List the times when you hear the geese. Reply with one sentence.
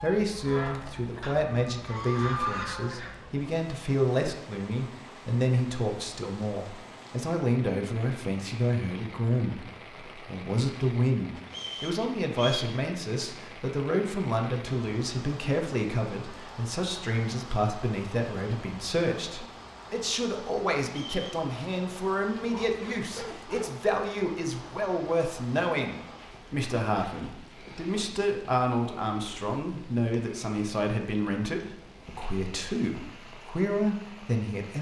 The geese can be heard from 0.0 to 3.3 s.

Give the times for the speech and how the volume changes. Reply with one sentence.
The speech can be heard from 0.0 to 34.7 s, at a steady volume.